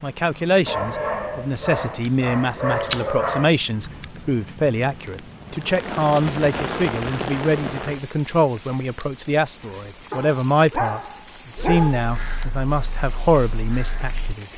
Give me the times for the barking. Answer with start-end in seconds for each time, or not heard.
0.7-3.5, 10.1-12.1.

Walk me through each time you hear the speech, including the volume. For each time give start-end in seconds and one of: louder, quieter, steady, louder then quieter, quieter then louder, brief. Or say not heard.
0.0-14.5 steady.